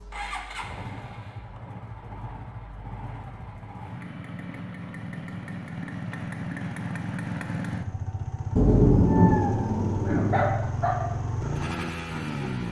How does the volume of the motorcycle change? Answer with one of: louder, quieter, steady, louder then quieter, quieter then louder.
louder.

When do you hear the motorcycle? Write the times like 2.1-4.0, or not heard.
0.0-12.6.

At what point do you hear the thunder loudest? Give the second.
9 s.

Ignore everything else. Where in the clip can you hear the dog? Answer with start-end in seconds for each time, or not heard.
9.1-11.0.